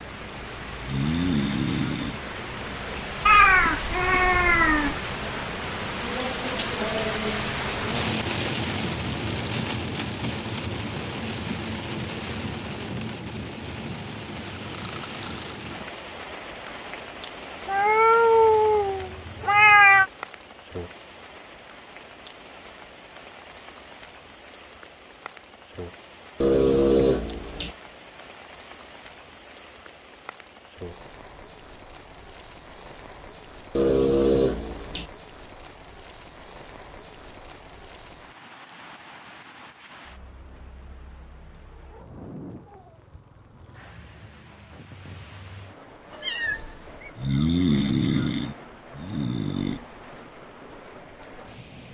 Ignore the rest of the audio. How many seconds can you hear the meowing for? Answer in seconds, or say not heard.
5 s.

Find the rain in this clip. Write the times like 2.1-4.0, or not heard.
0.0-51.9.